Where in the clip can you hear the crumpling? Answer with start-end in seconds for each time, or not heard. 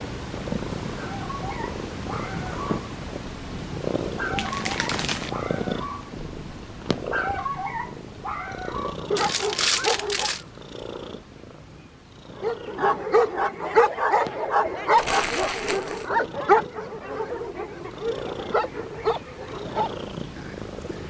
4.3-5.3, 9.2-10.4, 14.9-16.1.